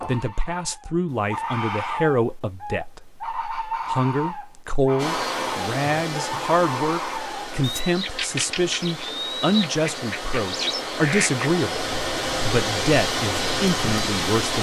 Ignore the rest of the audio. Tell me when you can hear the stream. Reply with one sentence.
You can hear the stream from 5.0 to 14.5 s.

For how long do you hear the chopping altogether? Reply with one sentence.
The chopping can't be heard in this clip.